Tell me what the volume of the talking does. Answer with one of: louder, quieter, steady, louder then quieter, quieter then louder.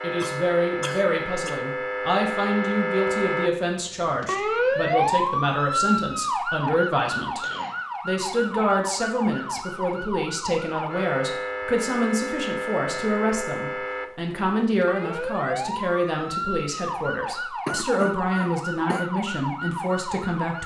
steady.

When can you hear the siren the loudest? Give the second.
5 s.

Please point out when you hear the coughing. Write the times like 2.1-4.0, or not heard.
0.2-1.6, 7.4-7.9, 17.6-19.1.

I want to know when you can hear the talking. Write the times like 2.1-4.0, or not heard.
0.0-7.5, 8.1-20.6.